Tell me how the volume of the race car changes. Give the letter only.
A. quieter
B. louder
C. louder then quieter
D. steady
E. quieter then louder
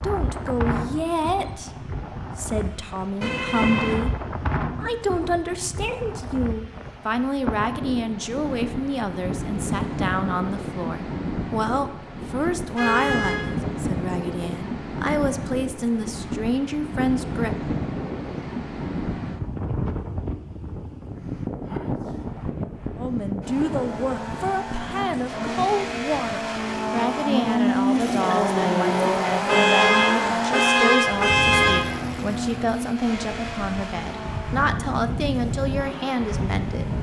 C.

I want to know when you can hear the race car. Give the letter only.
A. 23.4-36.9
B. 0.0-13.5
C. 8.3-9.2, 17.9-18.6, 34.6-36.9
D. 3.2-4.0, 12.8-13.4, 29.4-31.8
A.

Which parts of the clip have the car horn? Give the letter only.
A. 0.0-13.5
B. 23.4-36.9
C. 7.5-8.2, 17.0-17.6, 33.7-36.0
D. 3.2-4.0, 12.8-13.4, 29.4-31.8
D.